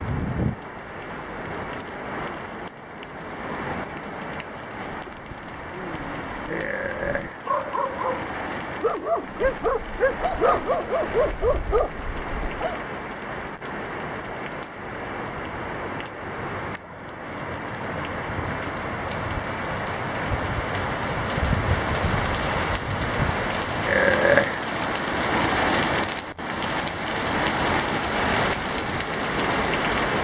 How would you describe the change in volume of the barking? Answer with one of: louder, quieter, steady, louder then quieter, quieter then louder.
louder.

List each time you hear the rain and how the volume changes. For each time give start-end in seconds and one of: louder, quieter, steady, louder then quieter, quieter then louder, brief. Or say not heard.
0.0-30.1 louder.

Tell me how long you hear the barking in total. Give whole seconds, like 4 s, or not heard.
8 s.